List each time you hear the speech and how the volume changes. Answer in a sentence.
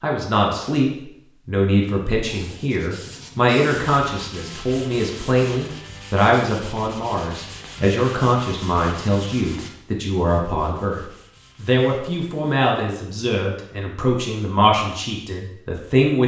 The speech can be heard from 0.0 to 16.2 s, at a steady volume.